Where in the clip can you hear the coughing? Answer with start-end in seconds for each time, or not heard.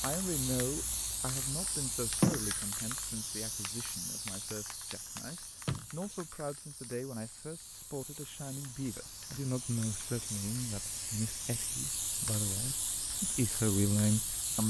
not heard.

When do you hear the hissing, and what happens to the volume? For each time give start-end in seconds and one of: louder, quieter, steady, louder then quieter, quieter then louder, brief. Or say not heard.
0.0-14.6 quieter then louder.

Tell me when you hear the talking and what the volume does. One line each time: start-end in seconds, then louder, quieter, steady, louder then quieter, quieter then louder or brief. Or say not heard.
0.0-14.6 quieter then louder.